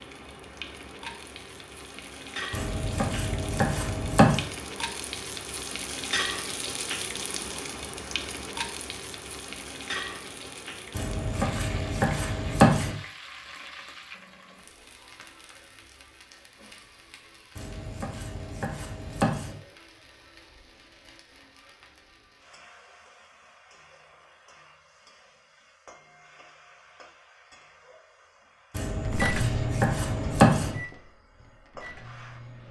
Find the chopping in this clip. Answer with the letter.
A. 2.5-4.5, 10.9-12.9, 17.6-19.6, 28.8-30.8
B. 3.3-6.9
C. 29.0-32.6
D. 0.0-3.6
A.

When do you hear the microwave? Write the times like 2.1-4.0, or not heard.
29.0-32.6.